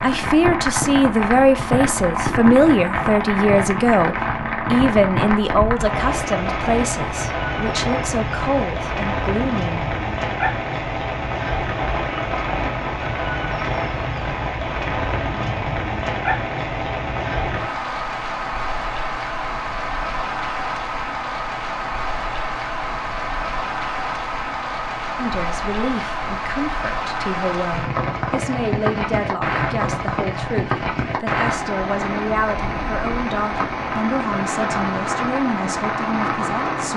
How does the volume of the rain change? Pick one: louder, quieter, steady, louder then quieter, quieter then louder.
steady.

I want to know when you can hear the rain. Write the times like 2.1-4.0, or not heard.
0.0-36.9.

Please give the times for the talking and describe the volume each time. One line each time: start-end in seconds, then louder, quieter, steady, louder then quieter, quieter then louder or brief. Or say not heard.
0.0-9.8 quieter
25.1-36.9 steady.